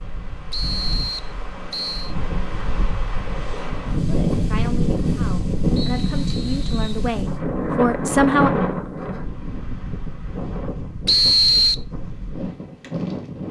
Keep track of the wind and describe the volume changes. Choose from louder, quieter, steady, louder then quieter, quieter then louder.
louder then quieter.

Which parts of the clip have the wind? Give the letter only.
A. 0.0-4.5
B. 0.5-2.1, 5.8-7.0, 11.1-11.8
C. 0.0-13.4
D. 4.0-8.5
C.